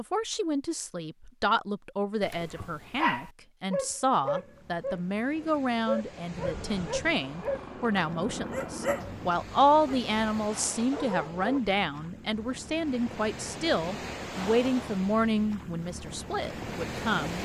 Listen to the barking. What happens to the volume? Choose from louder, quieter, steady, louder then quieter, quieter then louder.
quieter.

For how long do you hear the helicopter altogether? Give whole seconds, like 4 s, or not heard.
3 s.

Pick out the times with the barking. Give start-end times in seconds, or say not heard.
2.2-11.6.